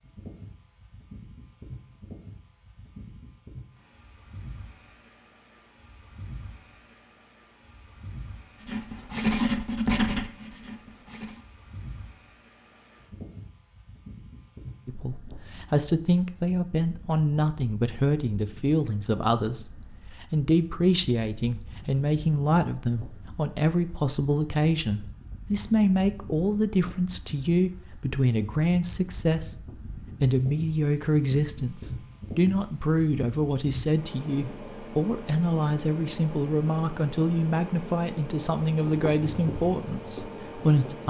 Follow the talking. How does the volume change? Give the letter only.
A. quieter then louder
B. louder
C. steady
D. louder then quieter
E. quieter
C.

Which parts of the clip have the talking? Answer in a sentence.
You can hear the talking from 14.8 to 41.0 s.